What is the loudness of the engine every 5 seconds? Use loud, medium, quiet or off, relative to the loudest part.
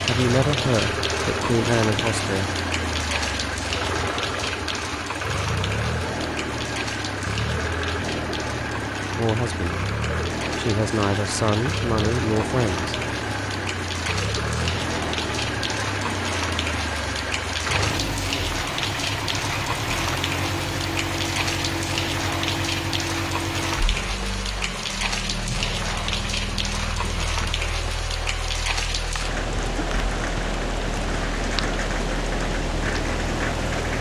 loud, loud, loud, loud, loud, medium, medium.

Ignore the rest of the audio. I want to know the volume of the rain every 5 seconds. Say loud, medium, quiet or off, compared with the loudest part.
loud, medium, medium, loud, loud, loud, loud.